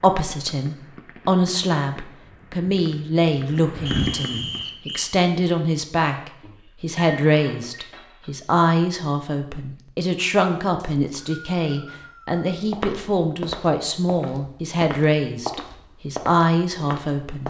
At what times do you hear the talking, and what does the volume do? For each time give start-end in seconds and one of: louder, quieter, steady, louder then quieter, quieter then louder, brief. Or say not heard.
0.0-17.4 steady.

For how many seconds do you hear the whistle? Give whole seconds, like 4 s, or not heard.
3 s.